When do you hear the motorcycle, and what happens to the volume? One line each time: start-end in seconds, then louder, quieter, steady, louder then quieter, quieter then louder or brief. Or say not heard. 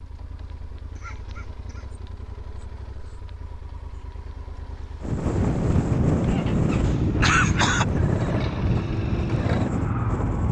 0.0-10.4 louder.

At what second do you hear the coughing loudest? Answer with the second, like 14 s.
7 s.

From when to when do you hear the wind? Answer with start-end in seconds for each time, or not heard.
5.0-10.4.